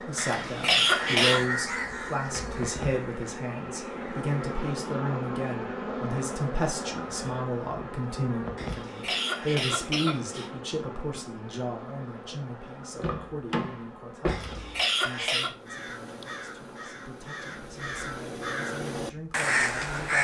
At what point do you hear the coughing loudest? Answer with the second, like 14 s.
1 s.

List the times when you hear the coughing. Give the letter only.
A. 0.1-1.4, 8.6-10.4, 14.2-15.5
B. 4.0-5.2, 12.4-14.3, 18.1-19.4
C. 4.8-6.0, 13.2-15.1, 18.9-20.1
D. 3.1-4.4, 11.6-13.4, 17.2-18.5
A.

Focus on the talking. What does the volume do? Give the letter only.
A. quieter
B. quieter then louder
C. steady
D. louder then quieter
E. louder
A.